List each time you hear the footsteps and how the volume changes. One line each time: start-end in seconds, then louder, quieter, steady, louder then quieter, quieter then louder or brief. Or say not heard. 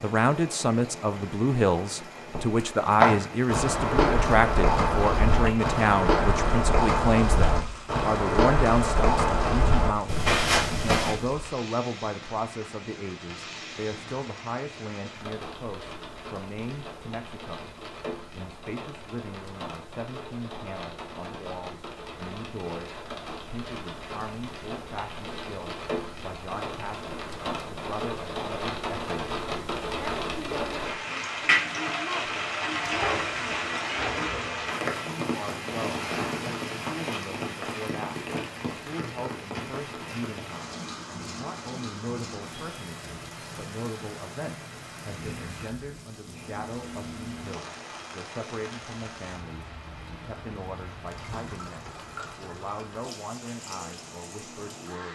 2.3-11.2 steady.